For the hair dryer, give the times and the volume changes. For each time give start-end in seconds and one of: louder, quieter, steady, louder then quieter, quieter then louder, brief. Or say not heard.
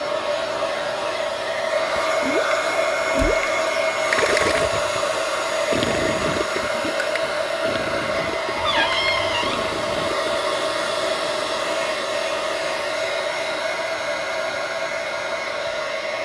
0.0-16.2 steady.